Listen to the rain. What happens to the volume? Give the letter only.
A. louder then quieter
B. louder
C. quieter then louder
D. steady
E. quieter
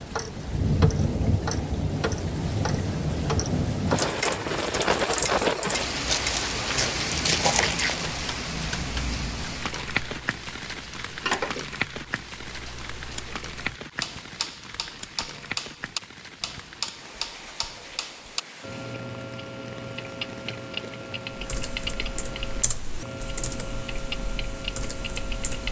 E.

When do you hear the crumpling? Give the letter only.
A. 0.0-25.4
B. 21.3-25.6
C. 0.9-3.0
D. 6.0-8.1
D.